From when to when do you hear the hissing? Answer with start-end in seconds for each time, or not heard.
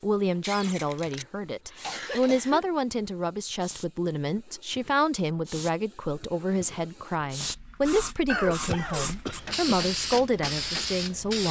0.0-11.4.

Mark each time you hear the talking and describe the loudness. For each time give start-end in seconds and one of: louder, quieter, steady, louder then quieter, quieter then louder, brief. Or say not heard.
0.0-11.4 steady.